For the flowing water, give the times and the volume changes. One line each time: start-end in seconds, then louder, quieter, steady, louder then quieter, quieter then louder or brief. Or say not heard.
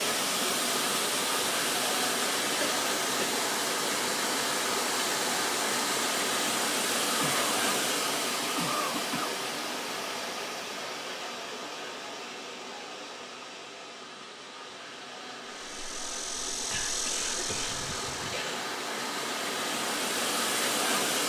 0.0-21.2 quieter then louder.